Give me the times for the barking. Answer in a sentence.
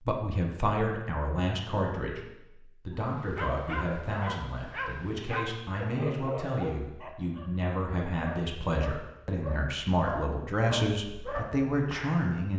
The barking can be heard from 3.0 to 12.2 s.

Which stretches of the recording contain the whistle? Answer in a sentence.
You can't hear the whistle here.